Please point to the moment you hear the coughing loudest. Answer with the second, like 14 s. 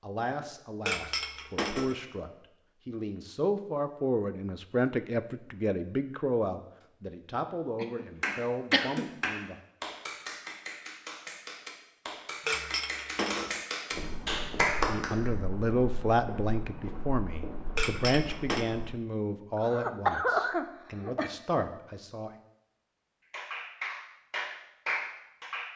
20 s.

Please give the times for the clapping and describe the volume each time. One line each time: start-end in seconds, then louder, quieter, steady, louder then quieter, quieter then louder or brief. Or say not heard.
8.2-15.3 quieter then louder
23.3-25.7 brief.